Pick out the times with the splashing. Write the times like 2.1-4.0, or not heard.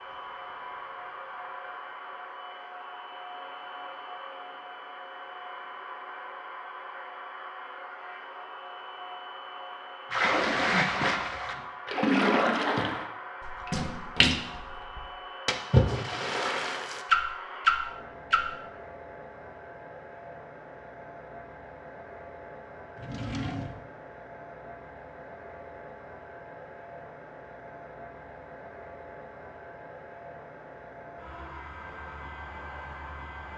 10.1-18.4.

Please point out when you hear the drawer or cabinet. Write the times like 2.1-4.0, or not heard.
22.9-23.9.